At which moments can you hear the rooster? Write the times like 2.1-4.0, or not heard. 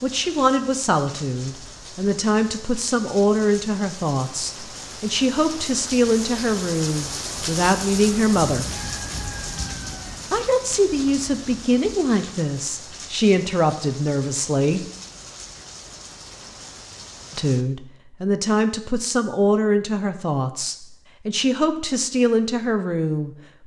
8.7-10.2.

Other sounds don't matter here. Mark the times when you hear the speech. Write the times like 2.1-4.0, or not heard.
0.0-8.7, 10.3-14.8, 17.4-23.4.